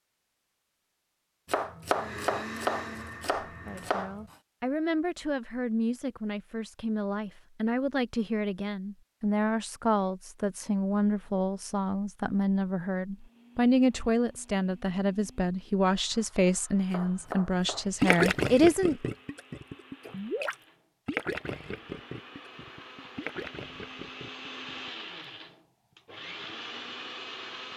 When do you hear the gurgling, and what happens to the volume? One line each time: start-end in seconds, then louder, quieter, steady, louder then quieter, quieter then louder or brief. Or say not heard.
18.0-25.0 quieter.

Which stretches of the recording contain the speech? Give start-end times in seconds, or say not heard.
3.6-19.0.